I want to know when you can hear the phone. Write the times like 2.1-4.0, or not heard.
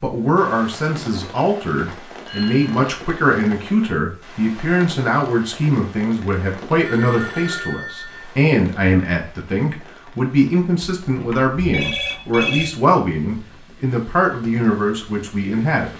2.2-2.8, 6.8-8.3, 11.0-12.7.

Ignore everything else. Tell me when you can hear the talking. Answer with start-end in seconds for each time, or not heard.
0.0-15.9.